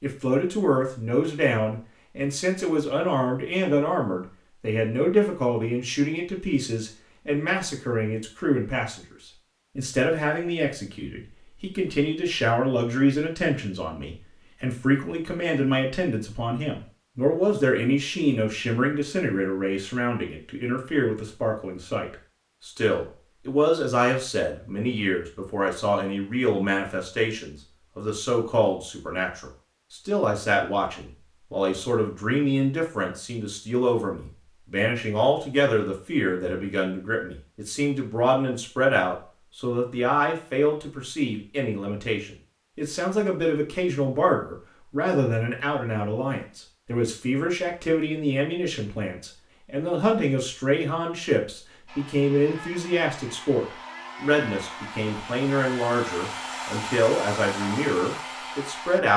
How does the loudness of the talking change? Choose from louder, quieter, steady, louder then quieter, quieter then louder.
steady.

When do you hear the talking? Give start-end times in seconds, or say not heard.
0.0-9.1, 9.8-59.1.